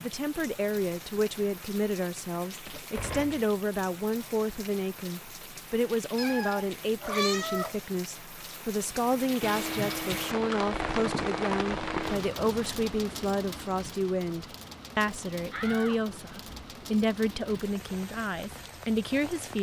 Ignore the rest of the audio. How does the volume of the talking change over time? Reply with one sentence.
The volume of the talking stays about the same.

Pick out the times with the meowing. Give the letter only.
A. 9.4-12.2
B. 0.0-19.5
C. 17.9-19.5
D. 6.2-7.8
D.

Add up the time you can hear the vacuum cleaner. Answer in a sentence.
You can hear the vacuum cleaner for 3 seconds altogether.